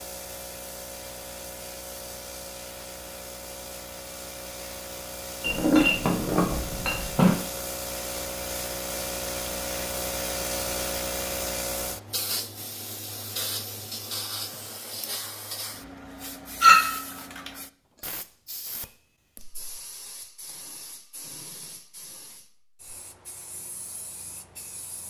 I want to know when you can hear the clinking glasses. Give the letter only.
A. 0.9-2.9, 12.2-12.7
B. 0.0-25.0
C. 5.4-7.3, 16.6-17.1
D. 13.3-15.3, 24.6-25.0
C.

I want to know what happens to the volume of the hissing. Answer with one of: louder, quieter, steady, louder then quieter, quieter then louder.
louder then quieter.